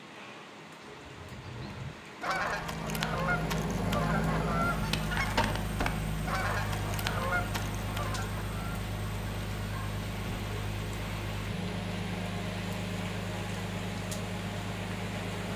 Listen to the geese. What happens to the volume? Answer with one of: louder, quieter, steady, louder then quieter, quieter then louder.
steady.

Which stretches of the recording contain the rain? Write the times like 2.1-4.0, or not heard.
0.0-15.5.